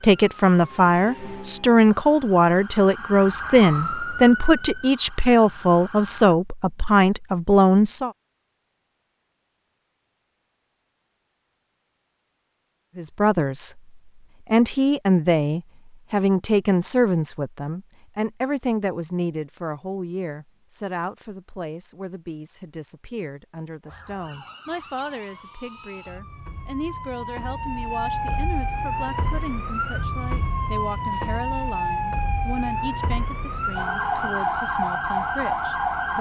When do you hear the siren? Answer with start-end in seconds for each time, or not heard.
0.0-6.3, 23.8-36.1.